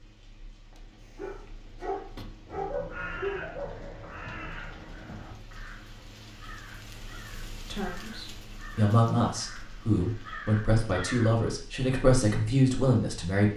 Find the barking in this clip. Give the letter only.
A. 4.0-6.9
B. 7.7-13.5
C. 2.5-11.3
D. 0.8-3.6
D.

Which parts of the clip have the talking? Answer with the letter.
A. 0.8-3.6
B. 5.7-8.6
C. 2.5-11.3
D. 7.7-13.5
D.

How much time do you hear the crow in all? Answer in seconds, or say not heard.
9 s.